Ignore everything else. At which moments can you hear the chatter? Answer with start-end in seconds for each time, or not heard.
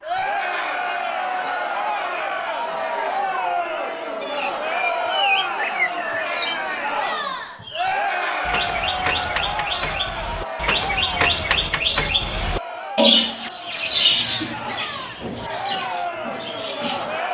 0.0-17.2.